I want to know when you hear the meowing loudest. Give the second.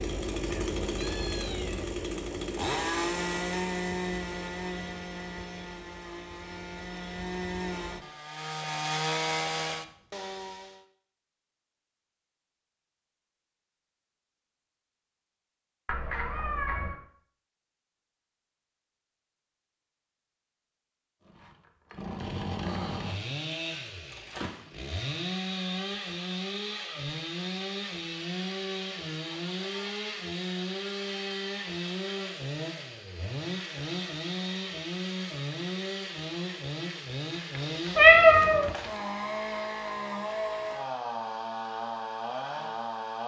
38 s.